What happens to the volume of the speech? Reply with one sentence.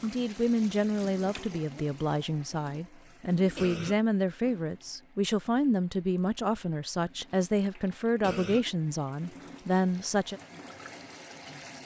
The volume of the speech stays about the same.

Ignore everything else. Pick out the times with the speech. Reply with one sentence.
The speech can be heard from 0.0 to 10.4 s.